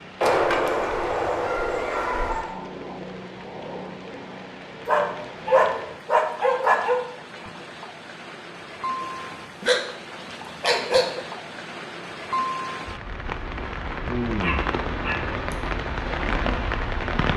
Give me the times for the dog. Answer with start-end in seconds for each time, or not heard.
0.2-2.5, 4.8-7.0, 9.0-9.8, 10.6-11.2, 14.4-15.6.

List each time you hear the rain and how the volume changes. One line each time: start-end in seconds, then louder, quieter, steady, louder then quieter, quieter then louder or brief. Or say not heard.
0.0-17.3 louder.